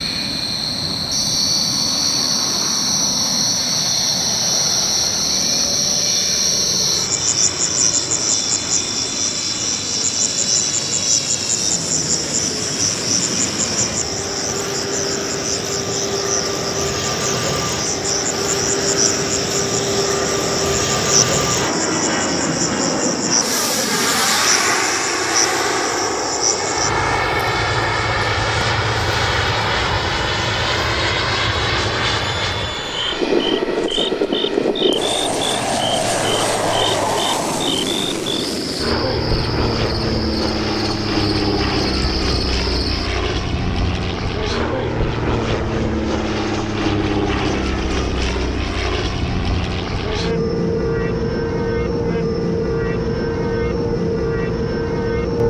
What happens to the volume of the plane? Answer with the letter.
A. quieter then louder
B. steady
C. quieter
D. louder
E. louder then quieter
D.